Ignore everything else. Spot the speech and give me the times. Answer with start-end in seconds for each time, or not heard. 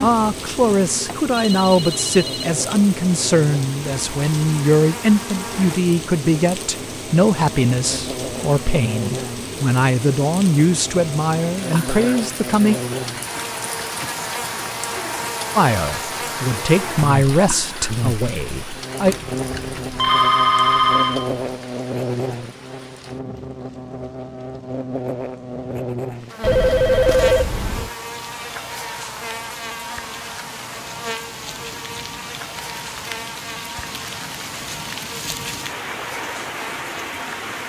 0.0-12.8, 15.6-19.1.